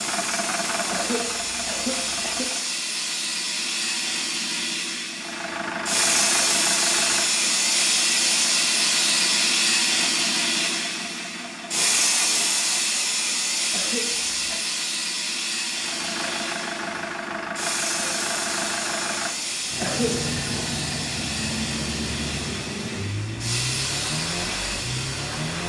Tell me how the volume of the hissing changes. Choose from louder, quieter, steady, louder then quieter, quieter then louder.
louder then quieter.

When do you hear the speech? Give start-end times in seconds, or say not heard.
not heard.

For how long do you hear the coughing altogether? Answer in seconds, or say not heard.
3 s.